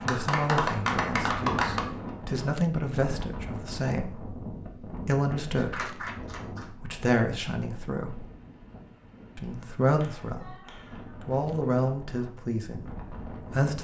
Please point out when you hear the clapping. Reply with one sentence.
The clapping can be heard from 0.1 to 1.9 s, from 5.5 to 7.0 s and from 9.8 to 11.3 s.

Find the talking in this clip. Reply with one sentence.
You can hear the talking from 0.1 to 6.0 s, from 6.7 to 8.2 s, from 9.3 to 10.6 s and from 11.2 to 13.7 s.